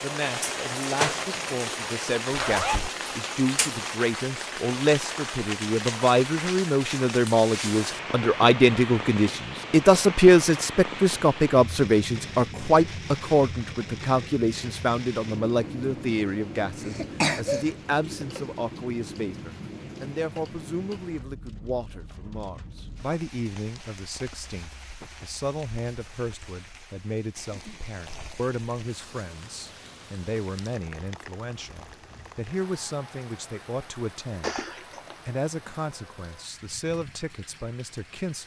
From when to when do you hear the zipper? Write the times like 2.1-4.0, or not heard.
2.3-2.9, 34.4-35.1.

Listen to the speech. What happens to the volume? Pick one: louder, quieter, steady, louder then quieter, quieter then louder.
louder then quieter.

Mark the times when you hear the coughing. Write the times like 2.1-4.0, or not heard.
16.8-17.7.